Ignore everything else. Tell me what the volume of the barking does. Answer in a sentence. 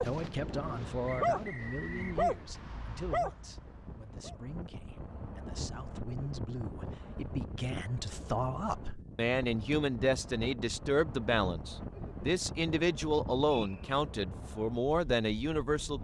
The volume of the barking goes up, then down.